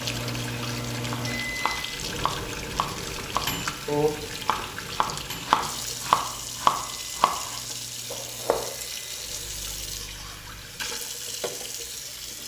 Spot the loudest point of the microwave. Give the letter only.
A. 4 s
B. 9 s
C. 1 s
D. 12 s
C.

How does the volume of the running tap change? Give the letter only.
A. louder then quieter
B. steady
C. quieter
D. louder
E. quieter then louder
B.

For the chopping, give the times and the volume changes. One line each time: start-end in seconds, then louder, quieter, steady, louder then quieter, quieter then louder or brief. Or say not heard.
1.1-8.7 louder then quieter.